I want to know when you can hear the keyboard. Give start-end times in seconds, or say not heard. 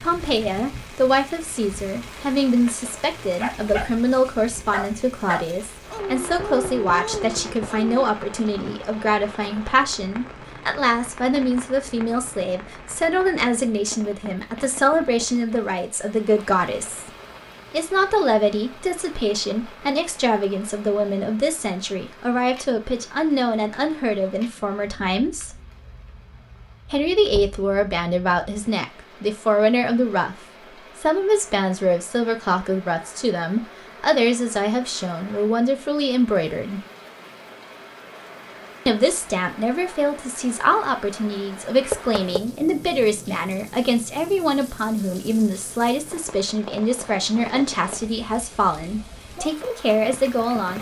not heard.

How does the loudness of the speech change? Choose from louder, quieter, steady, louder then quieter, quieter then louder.
steady.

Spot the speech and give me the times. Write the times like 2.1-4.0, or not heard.
0.0-17.1, 17.7-25.6, 26.9-30.4, 30.9-36.8, 38.9-50.7.